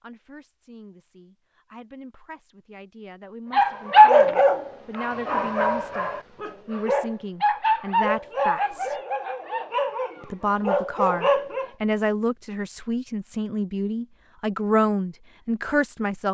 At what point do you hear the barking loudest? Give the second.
4 s.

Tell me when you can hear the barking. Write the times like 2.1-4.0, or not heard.
3.5-11.7.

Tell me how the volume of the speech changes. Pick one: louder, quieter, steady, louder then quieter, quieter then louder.
louder.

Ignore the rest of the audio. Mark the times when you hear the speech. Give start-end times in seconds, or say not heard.
0.0-8.9, 10.2-16.2.